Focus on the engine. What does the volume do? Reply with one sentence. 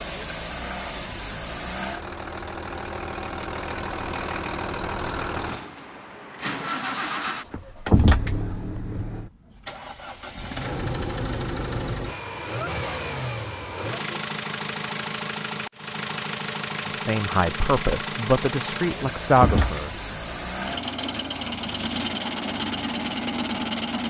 The loudness of the engine stays about the same.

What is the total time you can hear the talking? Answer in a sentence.
The talking can be heard for 3 seconds in total.